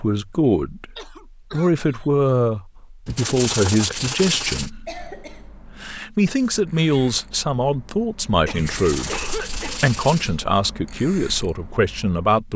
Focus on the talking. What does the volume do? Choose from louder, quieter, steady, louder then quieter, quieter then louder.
steady.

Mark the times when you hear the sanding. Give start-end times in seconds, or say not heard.
3.0-4.7, 8.6-10.3.